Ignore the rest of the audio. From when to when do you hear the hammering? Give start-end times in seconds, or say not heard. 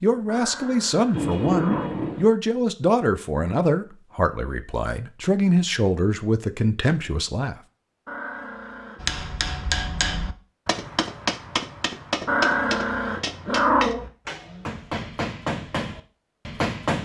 9.0-16.9.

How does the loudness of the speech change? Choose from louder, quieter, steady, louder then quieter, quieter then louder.
steady.